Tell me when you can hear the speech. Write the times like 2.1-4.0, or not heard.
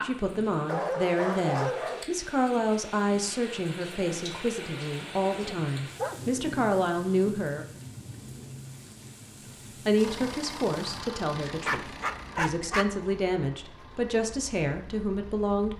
0.0-7.8, 9.8-15.7.